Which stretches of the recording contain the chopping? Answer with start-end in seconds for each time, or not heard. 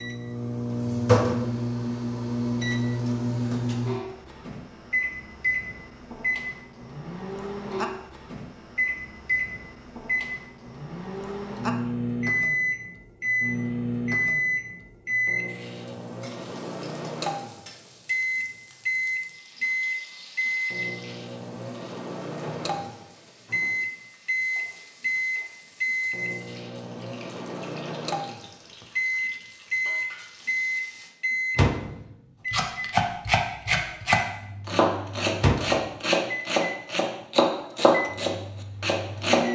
32.5-39.5.